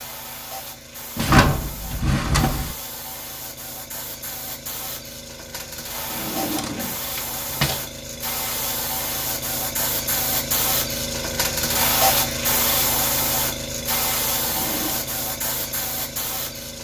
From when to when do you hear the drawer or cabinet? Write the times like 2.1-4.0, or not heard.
1.1-2.8, 6.1-7.8, 14.3-15.1.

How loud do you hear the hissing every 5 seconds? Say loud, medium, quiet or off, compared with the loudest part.
quiet, medium, loud, medium.